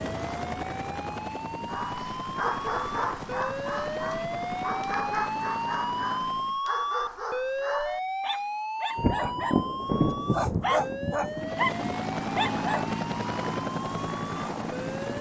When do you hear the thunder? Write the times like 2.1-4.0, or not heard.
8.9-11.9.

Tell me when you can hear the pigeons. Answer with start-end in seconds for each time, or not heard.
not heard.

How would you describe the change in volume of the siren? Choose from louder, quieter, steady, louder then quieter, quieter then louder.
louder then quieter.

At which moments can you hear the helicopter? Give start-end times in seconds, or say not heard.
0.0-6.6, 11.3-15.1.